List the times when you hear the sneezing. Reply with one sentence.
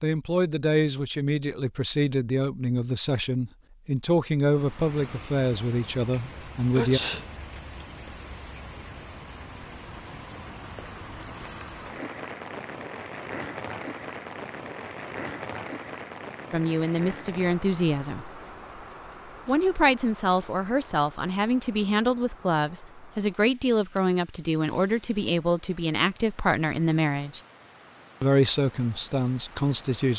The sneezing can be heard from 6.8 to 7.2 s.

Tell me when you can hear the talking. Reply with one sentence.
The talking can be heard from 0.0 to 7.0 s, from 16.5 to 18.2 s, from 19.4 to 27.4 s and from 28.2 to 30.1 s.